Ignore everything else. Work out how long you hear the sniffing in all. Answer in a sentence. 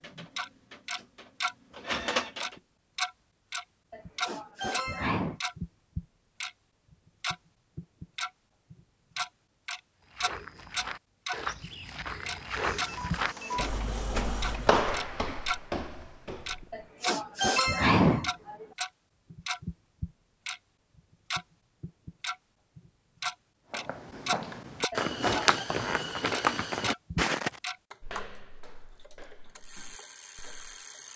The sniffing can be heard for 4 seconds in total.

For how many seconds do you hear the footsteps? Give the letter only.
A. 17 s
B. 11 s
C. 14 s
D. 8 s
C.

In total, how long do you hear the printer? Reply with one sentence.
You can hear the printer for 5 seconds altogether.